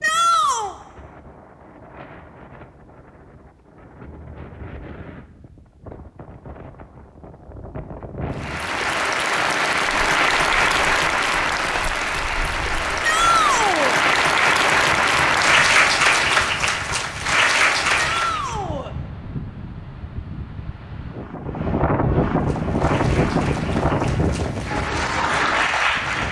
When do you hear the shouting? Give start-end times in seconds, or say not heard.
0.0-0.8, 13.0-14.0, 17.9-18.9.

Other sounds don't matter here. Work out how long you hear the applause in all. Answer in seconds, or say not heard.
14 s.